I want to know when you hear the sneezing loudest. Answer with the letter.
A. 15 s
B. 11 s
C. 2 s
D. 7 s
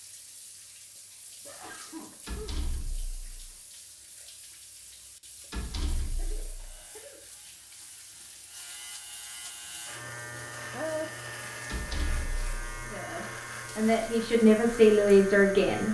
B.